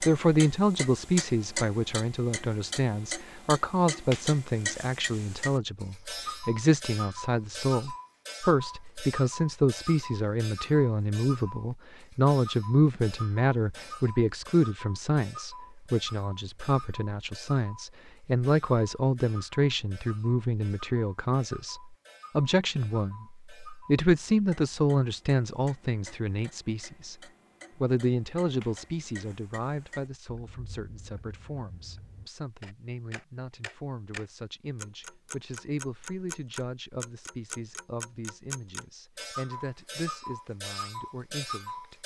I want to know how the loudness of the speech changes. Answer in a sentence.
The volume of the speech goes down.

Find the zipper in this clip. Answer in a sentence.
The zipper can't be heard in this clip.